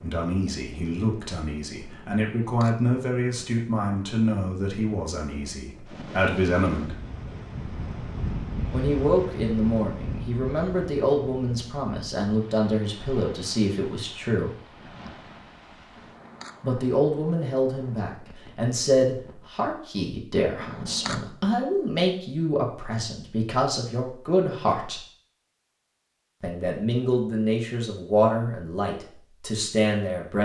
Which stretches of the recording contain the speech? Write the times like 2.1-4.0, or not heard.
0.0-7.0, 8.7-14.5, 16.6-25.0, 26.4-30.4.